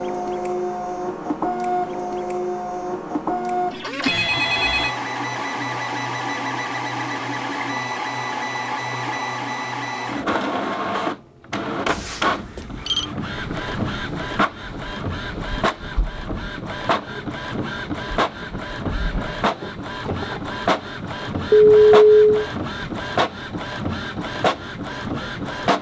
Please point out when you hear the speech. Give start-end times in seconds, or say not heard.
not heard.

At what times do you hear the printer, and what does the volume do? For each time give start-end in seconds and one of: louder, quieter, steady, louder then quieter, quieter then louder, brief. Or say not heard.
0.0-25.7 steady.